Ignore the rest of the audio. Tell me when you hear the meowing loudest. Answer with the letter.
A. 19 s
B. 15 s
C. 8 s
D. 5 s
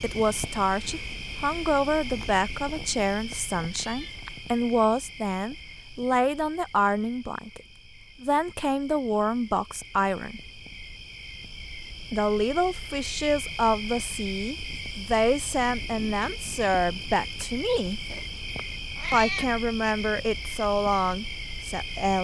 A.